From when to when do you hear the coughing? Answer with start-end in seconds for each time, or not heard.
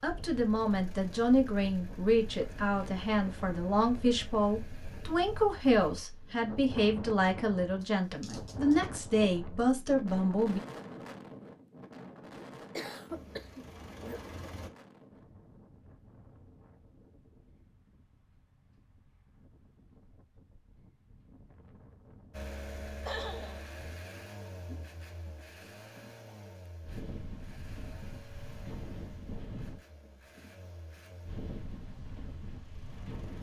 7.8-8.8, 12.8-14.2, 23.1-23.8.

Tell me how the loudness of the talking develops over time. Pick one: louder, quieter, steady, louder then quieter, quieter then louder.
steady.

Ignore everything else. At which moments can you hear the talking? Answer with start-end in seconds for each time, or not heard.
0.0-10.6.